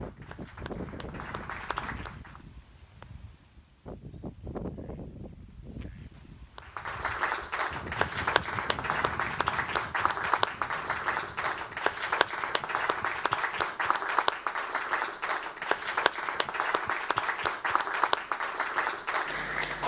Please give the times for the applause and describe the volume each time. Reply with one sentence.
The applause can be heard briefly from 0.0 to 2.5 s; and from 6.5 to 19.8 s, at a steady volume.